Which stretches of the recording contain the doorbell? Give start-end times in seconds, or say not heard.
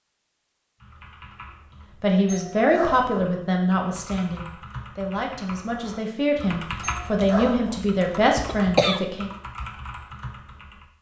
2.2-3.1, 6.8-7.8.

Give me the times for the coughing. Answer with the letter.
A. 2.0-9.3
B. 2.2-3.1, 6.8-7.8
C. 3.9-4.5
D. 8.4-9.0
D.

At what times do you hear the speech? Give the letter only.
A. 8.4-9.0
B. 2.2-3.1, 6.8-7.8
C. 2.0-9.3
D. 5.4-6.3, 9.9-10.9
C.